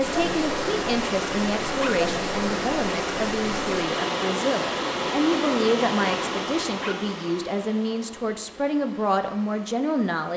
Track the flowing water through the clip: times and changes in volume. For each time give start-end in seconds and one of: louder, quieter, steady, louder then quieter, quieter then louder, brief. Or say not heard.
0.0-10.3 quieter.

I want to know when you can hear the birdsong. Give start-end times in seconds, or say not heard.
not heard.